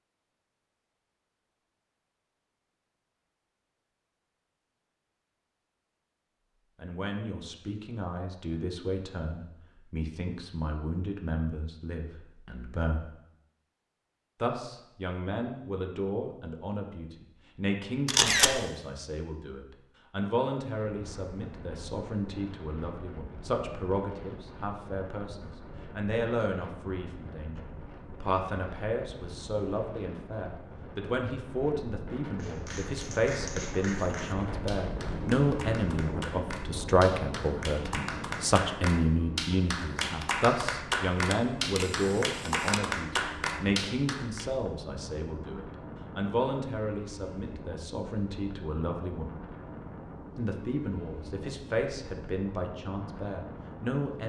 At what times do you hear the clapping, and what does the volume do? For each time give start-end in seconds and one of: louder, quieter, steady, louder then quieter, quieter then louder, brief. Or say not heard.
32.4-44.5 louder.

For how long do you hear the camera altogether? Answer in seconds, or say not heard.
2 s.